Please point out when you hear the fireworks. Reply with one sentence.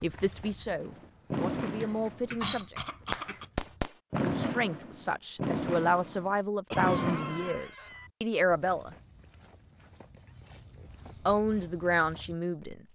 You can hear the fireworks from 0.8 to 7.6 s.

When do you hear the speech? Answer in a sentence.
You can hear the speech from 0.0 to 2.8 s, from 4.2 to 8.9 s and from 11.2 to 12.9 s.